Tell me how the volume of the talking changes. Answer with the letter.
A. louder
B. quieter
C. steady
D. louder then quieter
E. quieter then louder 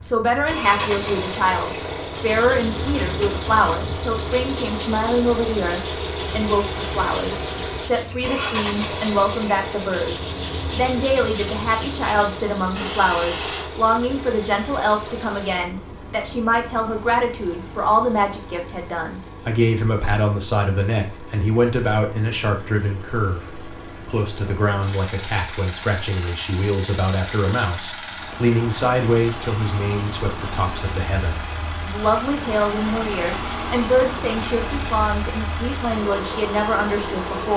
C.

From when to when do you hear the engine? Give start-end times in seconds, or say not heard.
0.0-37.5.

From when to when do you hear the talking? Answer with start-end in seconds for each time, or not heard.
0.0-37.5.